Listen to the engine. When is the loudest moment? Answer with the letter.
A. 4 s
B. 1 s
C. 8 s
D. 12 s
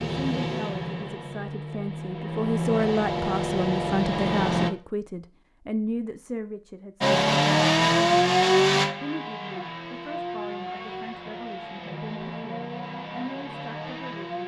C.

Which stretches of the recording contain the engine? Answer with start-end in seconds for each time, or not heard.
0.0-4.7, 7.0-14.4.